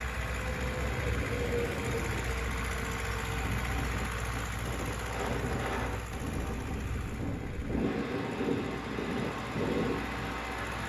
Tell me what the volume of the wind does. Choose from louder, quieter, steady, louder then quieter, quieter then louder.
louder.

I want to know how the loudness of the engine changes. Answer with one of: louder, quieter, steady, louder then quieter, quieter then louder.
quieter.